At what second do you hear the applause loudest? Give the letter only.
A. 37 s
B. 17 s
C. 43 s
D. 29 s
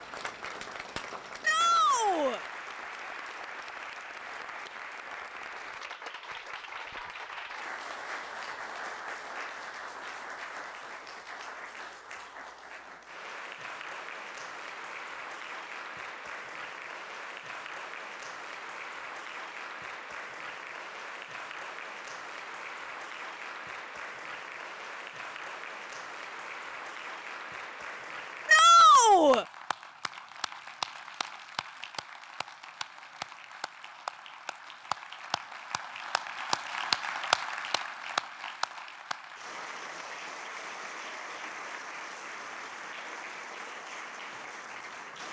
A.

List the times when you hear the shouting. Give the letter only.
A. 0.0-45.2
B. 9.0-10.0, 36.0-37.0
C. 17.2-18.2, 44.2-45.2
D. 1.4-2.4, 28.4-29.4
D.